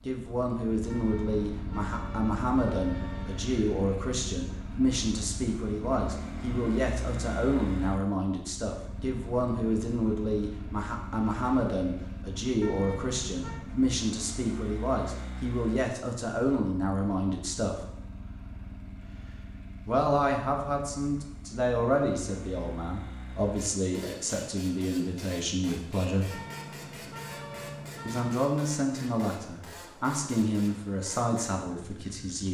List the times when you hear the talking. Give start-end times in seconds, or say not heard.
0.1-17.8, 19.9-26.4, 28.1-32.4.